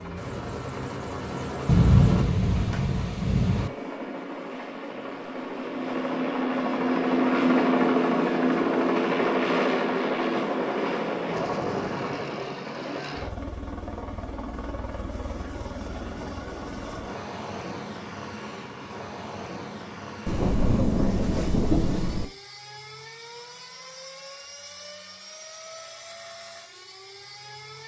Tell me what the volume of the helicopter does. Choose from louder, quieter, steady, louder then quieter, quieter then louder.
louder then quieter.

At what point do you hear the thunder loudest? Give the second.
2 s.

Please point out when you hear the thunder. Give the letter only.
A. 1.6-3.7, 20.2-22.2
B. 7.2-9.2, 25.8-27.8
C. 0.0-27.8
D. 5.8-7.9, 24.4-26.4
A.